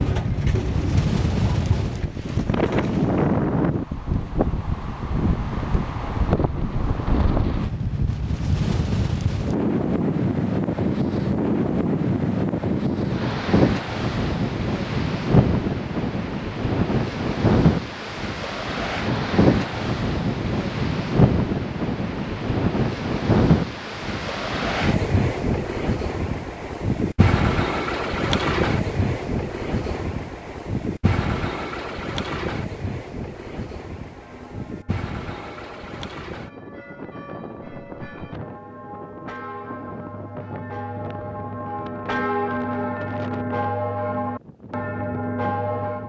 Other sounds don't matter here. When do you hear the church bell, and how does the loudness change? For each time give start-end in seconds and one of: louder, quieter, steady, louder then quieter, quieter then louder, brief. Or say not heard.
34.1-46.0 louder.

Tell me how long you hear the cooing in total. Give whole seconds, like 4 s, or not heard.
3 s.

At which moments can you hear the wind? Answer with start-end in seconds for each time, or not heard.
0.0-46.0.